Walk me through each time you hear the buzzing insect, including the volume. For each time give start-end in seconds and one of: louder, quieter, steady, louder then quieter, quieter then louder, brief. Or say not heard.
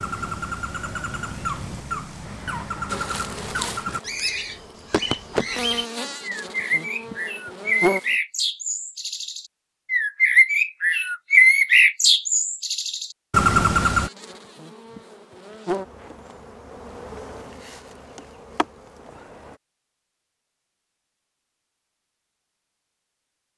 2.9-8.2 louder then quieter
13.8-19.6 louder then quieter.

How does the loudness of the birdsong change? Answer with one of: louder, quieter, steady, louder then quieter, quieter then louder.
louder.